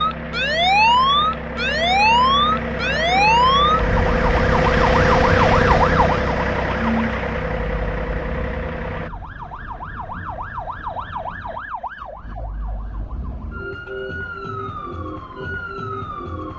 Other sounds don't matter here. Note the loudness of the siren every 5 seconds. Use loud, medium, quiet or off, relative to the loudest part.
loud, medium, quiet, quiet.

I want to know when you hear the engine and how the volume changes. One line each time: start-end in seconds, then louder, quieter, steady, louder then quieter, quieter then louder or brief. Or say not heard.
0.0-9.1 louder then quieter.